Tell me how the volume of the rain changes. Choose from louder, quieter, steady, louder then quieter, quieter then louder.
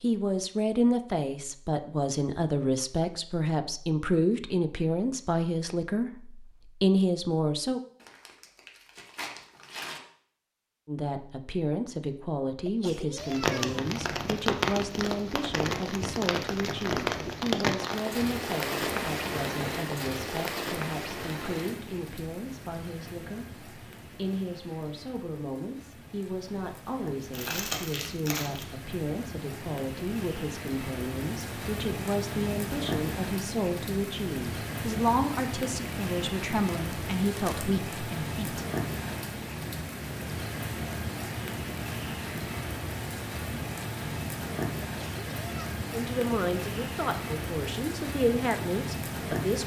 quieter then louder.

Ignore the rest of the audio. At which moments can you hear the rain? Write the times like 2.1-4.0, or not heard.
13.2-49.6.